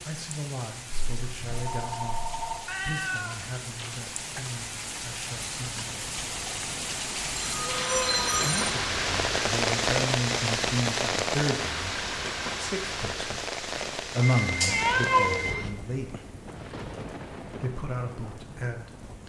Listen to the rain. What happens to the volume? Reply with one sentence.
The volume of the rain goes up, then down.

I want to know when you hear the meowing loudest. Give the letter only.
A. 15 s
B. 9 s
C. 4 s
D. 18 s
A.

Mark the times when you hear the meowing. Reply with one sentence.
The meowing can be heard from 2.6 to 4.5 s, from 7.6 to 8.3 s and from 14.7 to 15.7 s.